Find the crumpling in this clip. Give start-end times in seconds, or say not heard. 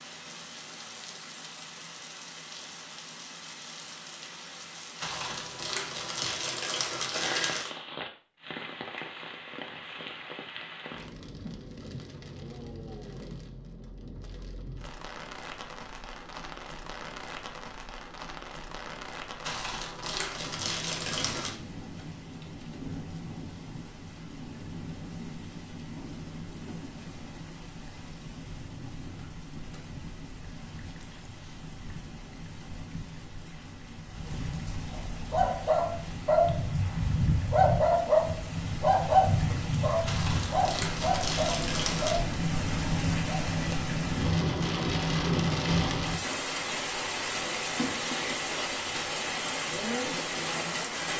5.0-7.7, 19.4-21.6, 40.0-42.2.